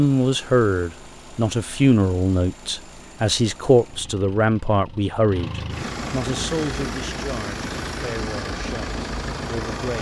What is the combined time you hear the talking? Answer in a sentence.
The talking can be heard for 10 seconds in total.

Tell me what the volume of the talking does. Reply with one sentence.
The volume of the talking goes down.